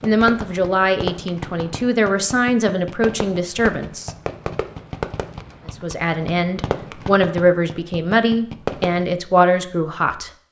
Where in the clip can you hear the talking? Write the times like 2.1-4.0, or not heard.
0.0-4.1, 5.7-10.3.